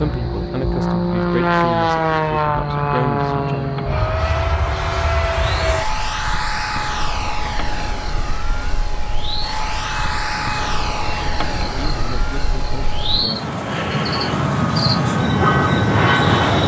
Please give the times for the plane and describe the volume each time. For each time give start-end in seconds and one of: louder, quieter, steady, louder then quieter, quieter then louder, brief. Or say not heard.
0.0-16.6 quieter then louder.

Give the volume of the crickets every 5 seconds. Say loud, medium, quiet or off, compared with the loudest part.
quiet, quiet, medium, loud.